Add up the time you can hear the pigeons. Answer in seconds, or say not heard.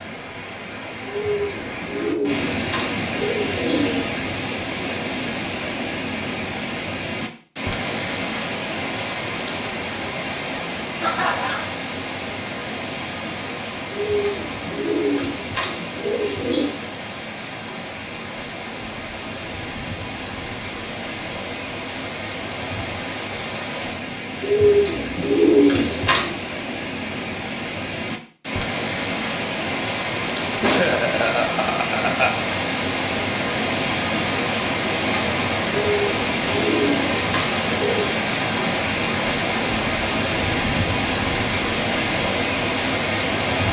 10 s.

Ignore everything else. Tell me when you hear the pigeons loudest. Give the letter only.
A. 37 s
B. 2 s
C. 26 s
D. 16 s
C.